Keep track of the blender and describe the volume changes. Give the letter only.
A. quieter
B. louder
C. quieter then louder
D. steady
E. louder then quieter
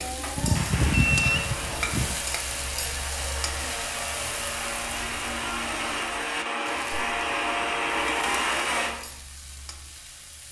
B.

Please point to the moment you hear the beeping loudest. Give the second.
1 s.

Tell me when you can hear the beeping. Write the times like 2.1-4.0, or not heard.
0.3-2.1, 7.6-8.3.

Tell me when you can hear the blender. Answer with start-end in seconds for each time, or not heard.
0.0-8.9.